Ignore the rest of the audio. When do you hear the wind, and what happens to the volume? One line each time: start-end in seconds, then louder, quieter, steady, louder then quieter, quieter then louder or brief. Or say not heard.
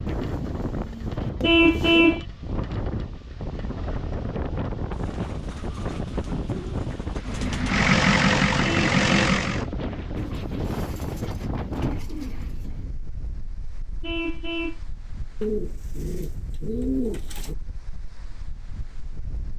0.0-19.5 quieter.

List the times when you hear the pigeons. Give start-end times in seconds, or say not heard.
0.1-2.2, 4.9-7.8, 10.2-12.9, 15.4-17.6.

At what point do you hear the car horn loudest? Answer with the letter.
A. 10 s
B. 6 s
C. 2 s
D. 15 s
C.